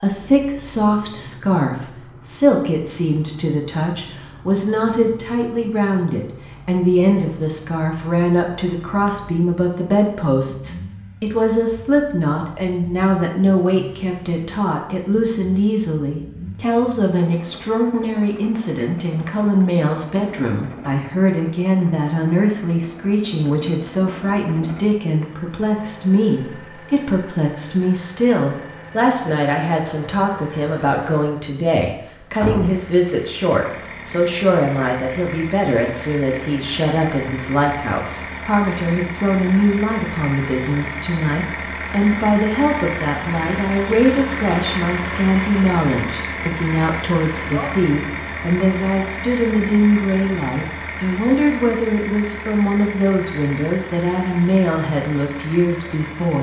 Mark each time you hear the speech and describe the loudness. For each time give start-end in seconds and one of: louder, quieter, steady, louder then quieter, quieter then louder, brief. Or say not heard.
0.0-56.3 steady.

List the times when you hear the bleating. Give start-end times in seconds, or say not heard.
not heard.